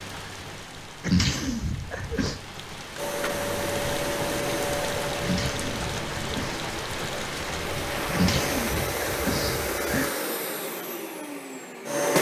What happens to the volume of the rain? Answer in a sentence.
The loudness of the rain goes up.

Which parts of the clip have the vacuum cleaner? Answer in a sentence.
You can hear the vacuum cleaner from 3.0 to 12.1 s.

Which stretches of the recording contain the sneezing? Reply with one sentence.
You can hear the sneezing from 1.0 to 2.4 s, from 5.2 to 6.6 s and from 8.1 to 10.1 s.